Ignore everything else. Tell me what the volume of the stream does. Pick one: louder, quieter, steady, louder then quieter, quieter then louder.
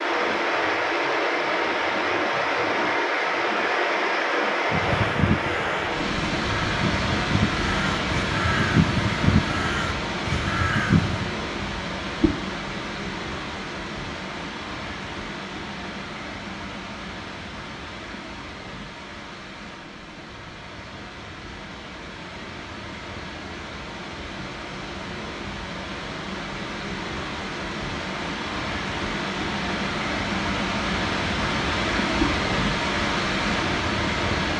quieter then louder.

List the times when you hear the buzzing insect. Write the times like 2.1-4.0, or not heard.
not heard.